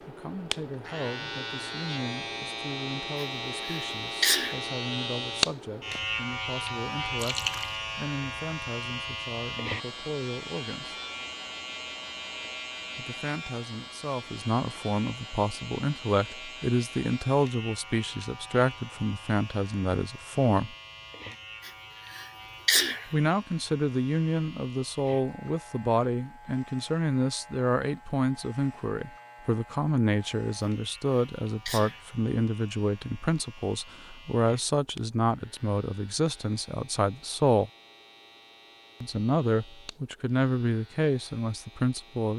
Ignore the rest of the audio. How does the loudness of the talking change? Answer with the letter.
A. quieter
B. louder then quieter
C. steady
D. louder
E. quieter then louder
D.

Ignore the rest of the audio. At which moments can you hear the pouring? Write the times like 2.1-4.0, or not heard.
7.2-7.8.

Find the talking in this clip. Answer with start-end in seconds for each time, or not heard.
0.1-10.9, 12.9-20.8, 23.1-37.7, 39.0-42.3.